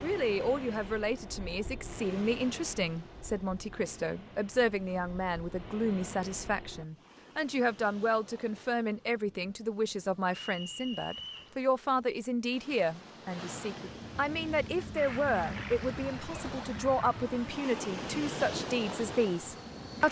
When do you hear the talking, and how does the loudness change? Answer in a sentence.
You can hear the talking from 0.0 to 20.0 s, at a steady volume.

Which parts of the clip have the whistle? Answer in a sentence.
The whistle can be heard from 10.3 to 11.6 s.